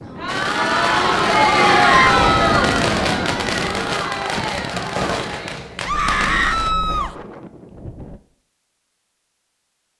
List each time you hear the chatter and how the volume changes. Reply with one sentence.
The chatter can be heard from 0.0 to 7.1 s, getting quieter.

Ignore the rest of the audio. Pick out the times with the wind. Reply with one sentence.
You can hear the wind from 0.0 to 8.2 s.